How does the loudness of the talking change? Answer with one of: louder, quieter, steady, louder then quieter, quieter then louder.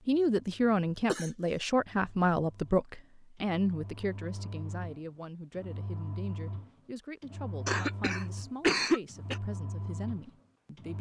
quieter.